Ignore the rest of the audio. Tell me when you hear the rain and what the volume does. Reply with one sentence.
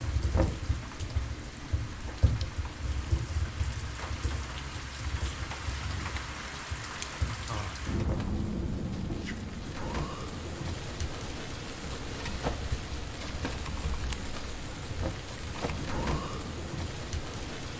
The rain can be heard from 0.0 to 17.7 s, getting louder.